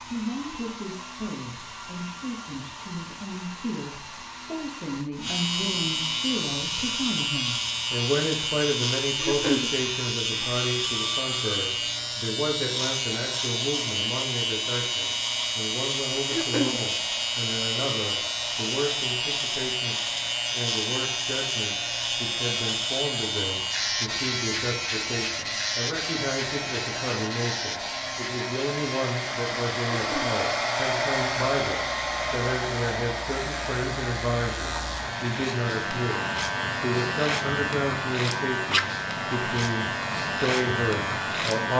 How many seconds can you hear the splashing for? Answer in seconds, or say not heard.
not heard.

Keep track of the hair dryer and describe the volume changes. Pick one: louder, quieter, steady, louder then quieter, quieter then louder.
louder.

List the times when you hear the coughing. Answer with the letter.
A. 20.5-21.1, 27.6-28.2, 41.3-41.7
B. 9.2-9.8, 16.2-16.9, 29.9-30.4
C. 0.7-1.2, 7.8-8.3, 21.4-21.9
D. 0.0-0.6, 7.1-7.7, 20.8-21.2
B.